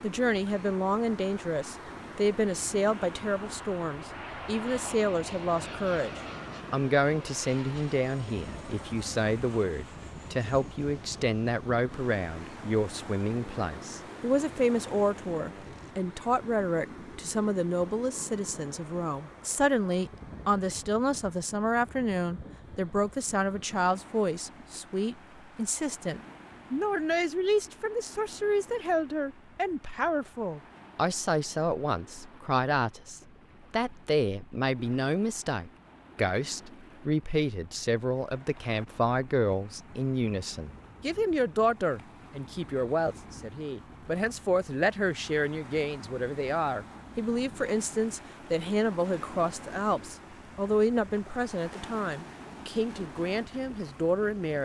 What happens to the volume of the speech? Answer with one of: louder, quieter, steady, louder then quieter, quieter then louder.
steady.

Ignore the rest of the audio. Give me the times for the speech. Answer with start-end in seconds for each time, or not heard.
0.0-54.6.